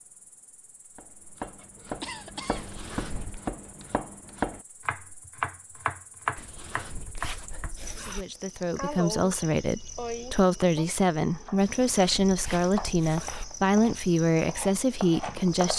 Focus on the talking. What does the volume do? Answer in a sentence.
The volume of the talking stays about the same.